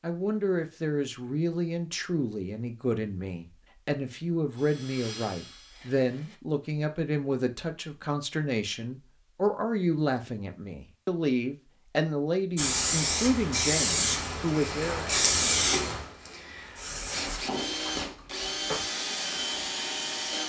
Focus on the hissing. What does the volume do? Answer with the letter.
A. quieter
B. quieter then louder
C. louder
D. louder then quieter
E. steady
A.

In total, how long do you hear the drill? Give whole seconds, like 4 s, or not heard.
5 s.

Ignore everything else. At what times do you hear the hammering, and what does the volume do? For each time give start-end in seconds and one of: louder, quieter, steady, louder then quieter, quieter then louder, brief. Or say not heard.
not heard.